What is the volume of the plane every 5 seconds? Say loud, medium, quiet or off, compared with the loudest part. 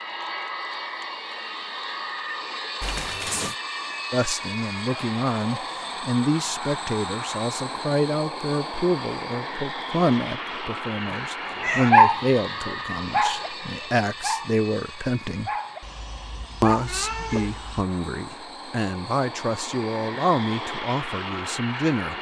loud, loud, loud, medium, loud.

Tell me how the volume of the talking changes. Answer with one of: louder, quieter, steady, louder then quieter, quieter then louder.
steady.